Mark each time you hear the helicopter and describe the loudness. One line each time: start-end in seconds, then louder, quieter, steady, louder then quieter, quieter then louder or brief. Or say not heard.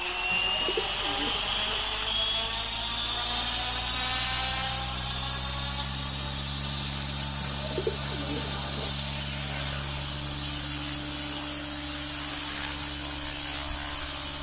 0.0-14.3 steady.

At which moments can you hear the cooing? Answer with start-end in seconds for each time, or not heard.
0.3-1.9, 7.3-8.9.